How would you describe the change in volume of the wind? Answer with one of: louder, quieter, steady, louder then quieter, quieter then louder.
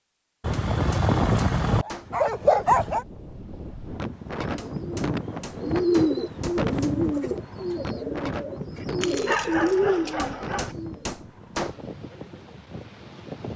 quieter.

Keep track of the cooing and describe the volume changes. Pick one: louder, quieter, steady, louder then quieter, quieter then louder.
quieter then louder.